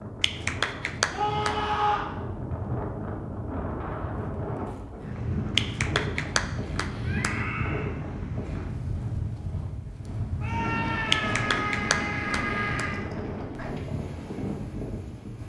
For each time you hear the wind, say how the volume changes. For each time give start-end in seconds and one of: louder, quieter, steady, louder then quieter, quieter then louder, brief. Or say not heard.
0.0-15.4 steady.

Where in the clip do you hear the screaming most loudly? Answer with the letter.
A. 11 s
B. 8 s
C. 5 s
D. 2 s
D.